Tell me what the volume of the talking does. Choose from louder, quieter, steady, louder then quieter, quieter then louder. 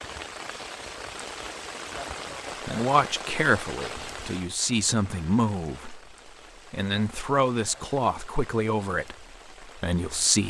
steady.